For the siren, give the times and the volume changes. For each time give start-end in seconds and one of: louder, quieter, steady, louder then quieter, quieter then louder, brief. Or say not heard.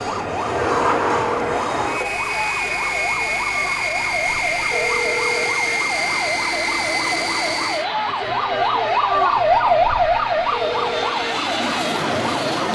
0.0-12.6 louder.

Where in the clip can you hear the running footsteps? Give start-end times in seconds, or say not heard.
not heard.